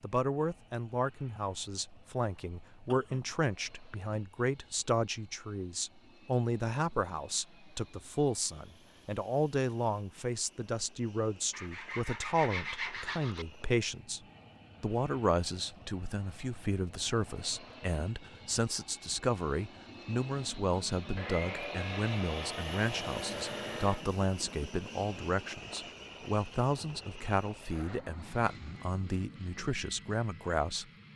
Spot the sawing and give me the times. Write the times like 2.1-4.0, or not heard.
11.5-13.4, 21.1-24.1.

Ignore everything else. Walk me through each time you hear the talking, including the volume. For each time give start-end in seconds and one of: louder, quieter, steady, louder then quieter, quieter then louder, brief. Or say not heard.
0.0-14.2 steady
14.8-30.9 steady.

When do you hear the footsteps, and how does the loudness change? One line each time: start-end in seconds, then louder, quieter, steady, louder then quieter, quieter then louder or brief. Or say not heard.
not heard.